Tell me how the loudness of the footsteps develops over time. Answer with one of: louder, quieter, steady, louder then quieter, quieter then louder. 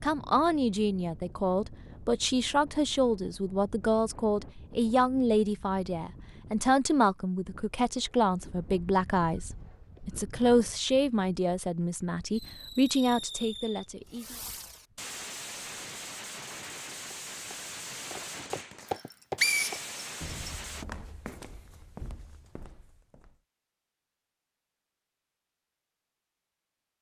louder then quieter.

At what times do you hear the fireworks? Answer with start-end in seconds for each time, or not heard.
12.3-20.9.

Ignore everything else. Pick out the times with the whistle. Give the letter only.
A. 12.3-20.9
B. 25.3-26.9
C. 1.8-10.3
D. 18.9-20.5
D.